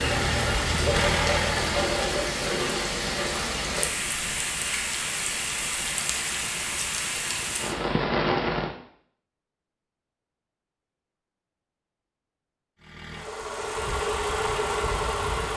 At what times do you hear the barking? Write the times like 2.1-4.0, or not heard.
not heard.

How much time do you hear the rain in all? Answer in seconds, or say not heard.
9 s.